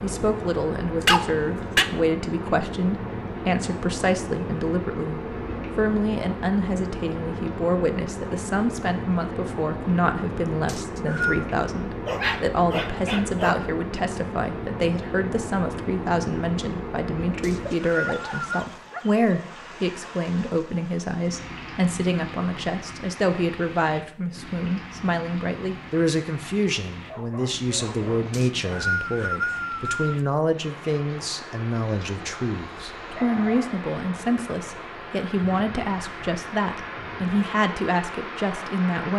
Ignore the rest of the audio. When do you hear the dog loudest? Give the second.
1 s.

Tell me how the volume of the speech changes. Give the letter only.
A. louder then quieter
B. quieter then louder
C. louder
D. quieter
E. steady
E.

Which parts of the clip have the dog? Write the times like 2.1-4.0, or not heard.
1.0-1.9, 12.1-13.7, 17.9-19.4, 27.1-28.9, 31.8-33.9.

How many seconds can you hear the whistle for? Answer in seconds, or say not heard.
4 s.